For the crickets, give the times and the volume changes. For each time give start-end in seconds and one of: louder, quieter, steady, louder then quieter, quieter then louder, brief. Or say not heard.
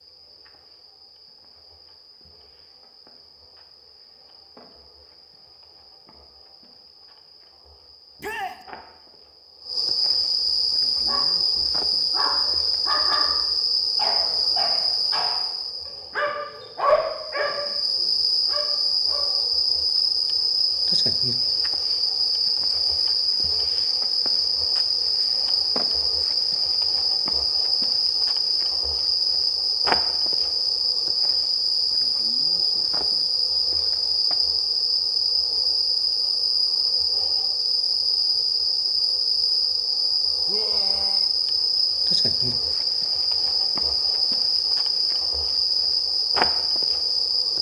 0.0-47.5 louder.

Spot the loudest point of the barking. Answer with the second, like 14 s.
17 s.